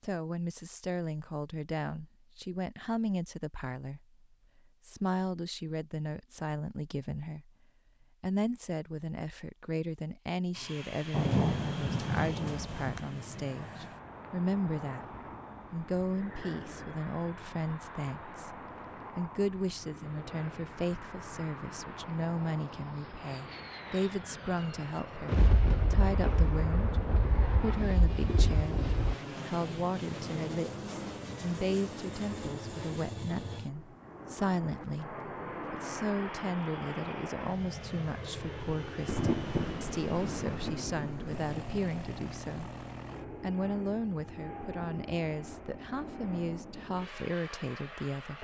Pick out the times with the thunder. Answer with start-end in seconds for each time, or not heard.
11.1-13.1, 25.2-29.1, 39.0-41.8.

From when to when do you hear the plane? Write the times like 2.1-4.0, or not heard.
10.5-48.3.